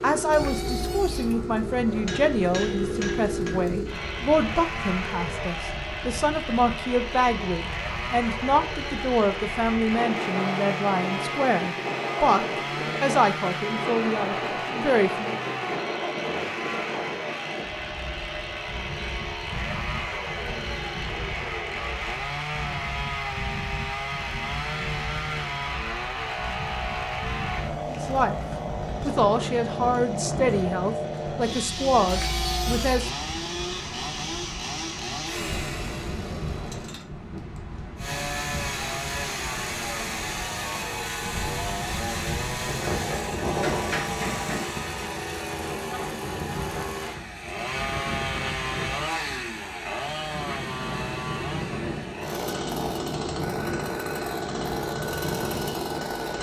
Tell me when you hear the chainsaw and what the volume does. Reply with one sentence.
The chainsaw can be heard from 0.0 to 56.3 s, at a steady volume.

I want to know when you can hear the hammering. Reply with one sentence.
The hammering can be heard from 1.9 to 3.6 s and from 43.0 to 44.8 s.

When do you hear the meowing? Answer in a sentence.
The meowing can be heard from 0.3 to 1.4 s and from 32.0 to 33.1 s.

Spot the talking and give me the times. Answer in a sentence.
You can hear the talking from 0.0 to 15.3 s, from 27.9 to 28.4 s and from 29.1 to 33.1 s.